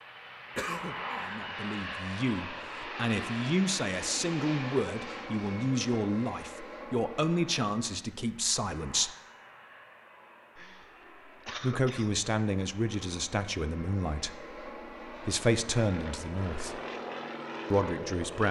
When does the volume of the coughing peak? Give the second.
1 s.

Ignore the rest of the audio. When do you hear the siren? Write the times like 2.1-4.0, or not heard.
not heard.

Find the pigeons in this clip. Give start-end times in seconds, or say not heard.
not heard.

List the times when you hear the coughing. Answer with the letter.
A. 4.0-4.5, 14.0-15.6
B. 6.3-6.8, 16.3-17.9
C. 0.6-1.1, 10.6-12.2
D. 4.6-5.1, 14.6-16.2
C.